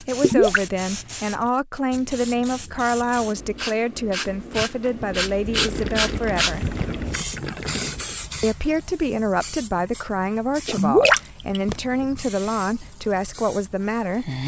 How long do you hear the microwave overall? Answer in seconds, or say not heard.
not heard.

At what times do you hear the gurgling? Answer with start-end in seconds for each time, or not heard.
0.2-0.7, 5.5-8.0, 10.7-11.3.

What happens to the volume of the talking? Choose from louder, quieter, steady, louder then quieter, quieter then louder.
steady.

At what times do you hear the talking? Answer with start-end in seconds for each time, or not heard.
0.0-6.8, 8.4-14.4.